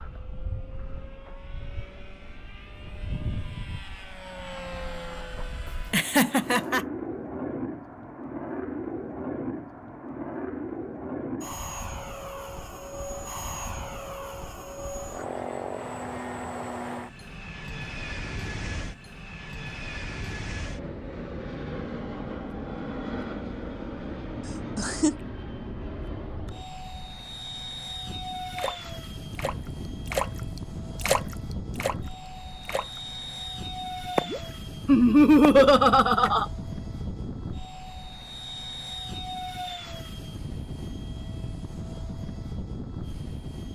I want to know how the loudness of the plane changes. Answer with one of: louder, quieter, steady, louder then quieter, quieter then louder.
steady.